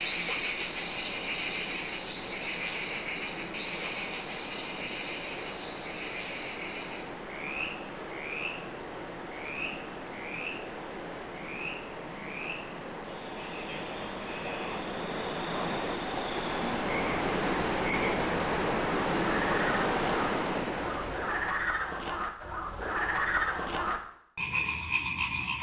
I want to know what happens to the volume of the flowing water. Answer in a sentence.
The loudness of the flowing water goes up.